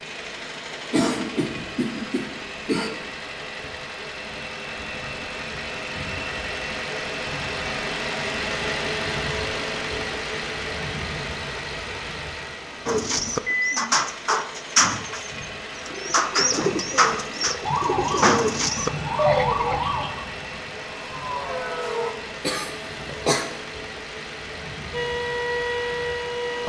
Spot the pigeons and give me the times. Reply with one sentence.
You can hear the pigeons from 12.8 to 19.8 s.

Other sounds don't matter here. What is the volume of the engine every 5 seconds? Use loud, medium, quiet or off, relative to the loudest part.
medium, loud, loud, medium, medium, medium.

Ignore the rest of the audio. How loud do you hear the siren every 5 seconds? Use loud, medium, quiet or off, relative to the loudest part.
off, off, off, loud, medium, loud.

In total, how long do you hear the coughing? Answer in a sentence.
The coughing can be heard for 3 seconds in total.